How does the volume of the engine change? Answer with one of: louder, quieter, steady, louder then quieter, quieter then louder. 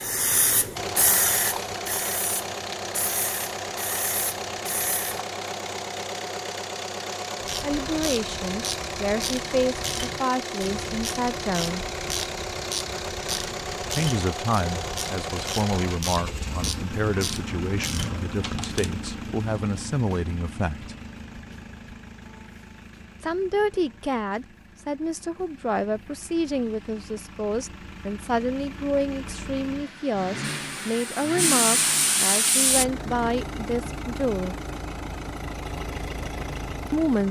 quieter then louder.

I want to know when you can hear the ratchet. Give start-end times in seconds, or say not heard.
7.4-18.9.